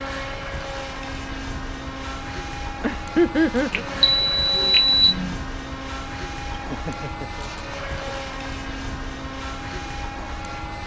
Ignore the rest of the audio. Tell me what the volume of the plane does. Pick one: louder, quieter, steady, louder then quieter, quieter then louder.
steady.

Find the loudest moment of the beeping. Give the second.
5 s.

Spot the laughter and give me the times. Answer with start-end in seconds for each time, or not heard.
2.8-3.9, 6.5-8.2.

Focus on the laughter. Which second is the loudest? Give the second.
3 s.